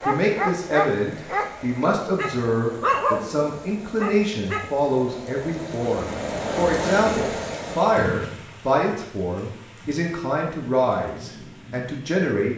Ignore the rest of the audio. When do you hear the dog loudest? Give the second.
3 s.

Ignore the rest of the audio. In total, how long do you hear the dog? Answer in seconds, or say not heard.
5 s.